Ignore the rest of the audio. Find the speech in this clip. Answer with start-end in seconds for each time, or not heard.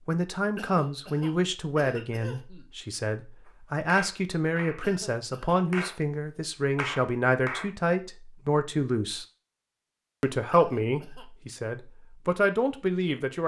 0.1-9.2, 10.2-13.4.